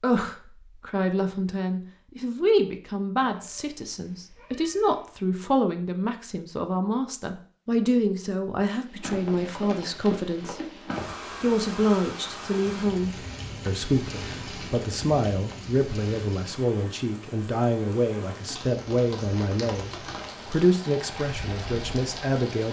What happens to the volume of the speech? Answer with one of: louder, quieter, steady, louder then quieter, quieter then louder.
steady.